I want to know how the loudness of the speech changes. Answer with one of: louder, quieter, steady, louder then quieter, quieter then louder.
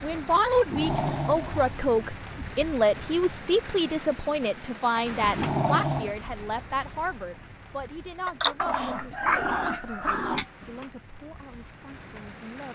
quieter.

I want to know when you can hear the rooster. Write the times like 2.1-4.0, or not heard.
8.2-10.2.